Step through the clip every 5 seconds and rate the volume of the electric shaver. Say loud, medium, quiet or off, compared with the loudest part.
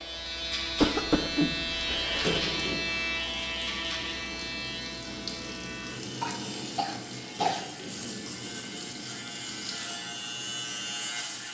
loud, medium, loud.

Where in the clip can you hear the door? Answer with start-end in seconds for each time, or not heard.
2.1-3.0, 7.2-8.1.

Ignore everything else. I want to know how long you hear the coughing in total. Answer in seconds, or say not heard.
3 s.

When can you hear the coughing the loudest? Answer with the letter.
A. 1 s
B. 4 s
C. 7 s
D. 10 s
A.